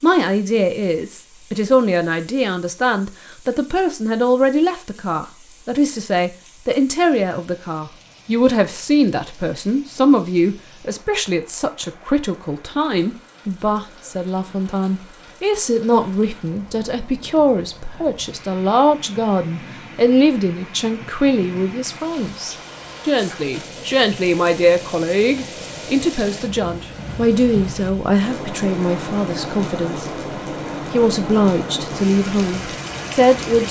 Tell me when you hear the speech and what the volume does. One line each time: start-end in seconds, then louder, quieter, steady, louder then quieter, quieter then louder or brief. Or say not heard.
0.0-30.1 steady
30.9-33.6 brief.